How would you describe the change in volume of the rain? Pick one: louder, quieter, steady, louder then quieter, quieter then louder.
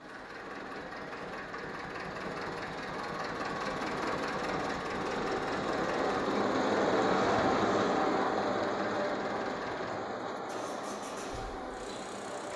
louder then quieter.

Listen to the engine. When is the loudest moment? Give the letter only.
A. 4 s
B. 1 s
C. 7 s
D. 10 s
A.